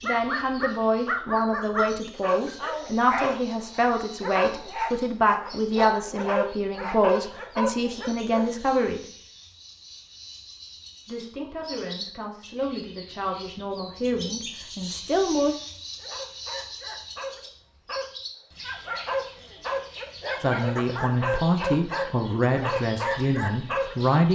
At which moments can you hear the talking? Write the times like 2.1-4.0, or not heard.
0.0-9.1, 11.1-15.6, 20.4-24.2.